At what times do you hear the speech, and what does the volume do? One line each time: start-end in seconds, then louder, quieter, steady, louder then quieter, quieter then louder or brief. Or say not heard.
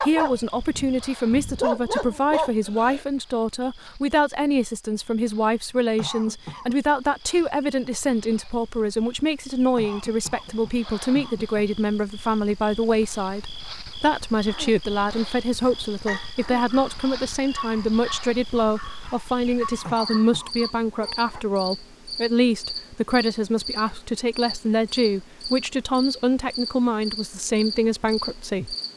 0.0-28.8 steady.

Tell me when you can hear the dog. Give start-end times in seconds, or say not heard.
0.0-3.0, 14.4-21.4.